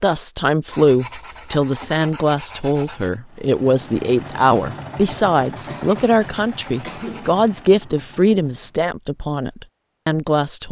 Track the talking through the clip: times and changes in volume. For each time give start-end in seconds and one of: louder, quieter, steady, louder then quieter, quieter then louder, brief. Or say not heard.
0.0-10.6 steady.